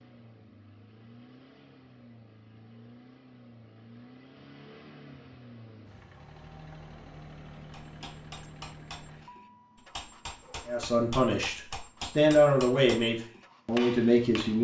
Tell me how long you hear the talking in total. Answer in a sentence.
The talking can be heard for 4 seconds in total.